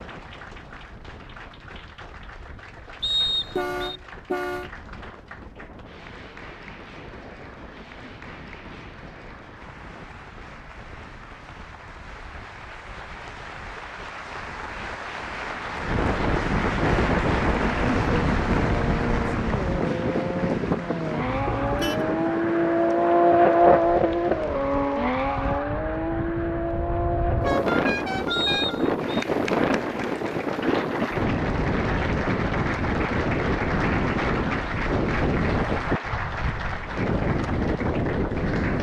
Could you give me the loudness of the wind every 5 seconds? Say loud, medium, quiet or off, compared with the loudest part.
quiet, quiet, quiet, loud, medium, loud, loud, loud.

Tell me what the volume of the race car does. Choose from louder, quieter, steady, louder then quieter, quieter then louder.
louder then quieter.